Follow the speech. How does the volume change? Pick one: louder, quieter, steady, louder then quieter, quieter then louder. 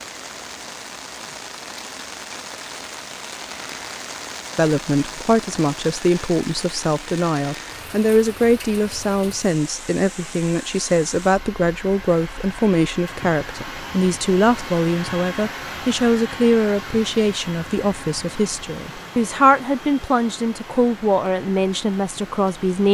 steady.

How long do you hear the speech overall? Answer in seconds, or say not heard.
18 s.